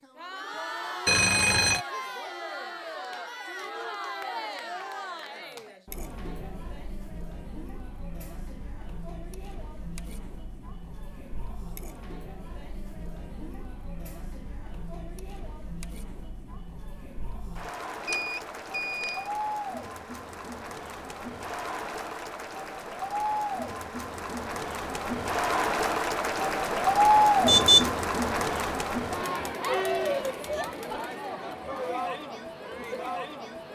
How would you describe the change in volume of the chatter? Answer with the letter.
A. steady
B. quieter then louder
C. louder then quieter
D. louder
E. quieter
B.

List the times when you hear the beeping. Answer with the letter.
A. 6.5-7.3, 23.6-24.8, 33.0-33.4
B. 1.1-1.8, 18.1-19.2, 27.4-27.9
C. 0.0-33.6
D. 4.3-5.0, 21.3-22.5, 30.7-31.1
B.